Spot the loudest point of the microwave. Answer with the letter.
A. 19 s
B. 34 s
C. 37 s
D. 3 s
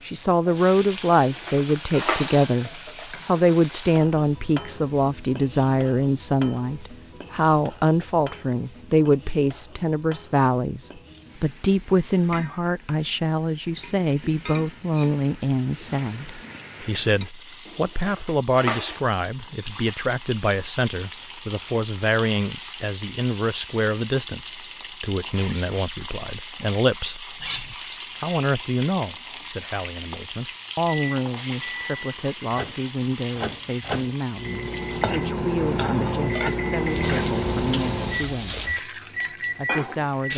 C.